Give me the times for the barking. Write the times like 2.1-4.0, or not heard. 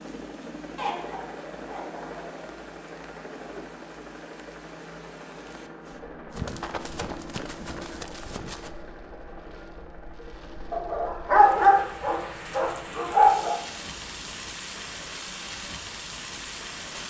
0.8-2.2, 10.7-13.6.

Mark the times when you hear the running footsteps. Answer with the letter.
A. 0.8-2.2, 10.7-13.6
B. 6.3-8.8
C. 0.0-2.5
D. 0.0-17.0
B.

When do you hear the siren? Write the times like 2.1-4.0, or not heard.
not heard.